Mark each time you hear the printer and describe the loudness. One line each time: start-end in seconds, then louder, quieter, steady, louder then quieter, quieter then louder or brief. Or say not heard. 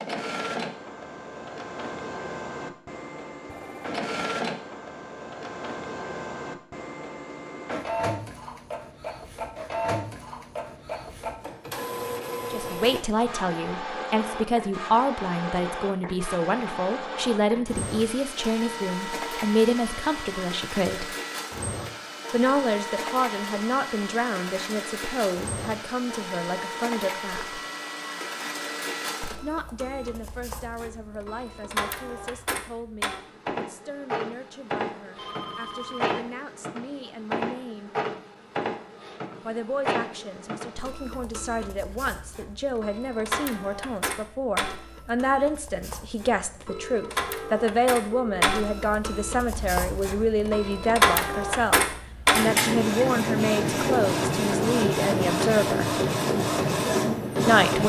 0.0-57.8 louder.